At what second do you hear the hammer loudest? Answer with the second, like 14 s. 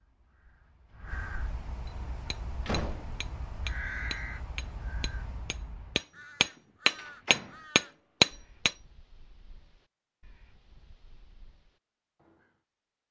8 s.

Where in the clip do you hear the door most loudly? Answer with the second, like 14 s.
3 s.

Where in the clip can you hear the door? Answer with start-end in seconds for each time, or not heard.
2.6-3.2, 7.0-7.5.